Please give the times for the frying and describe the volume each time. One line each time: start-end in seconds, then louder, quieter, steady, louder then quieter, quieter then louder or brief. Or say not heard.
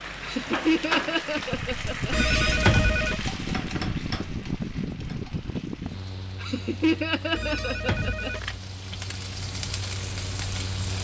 0.0-10.9 quieter then louder.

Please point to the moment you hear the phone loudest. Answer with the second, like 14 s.
3 s.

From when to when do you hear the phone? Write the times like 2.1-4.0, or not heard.
2.1-3.3, 7.3-8.6.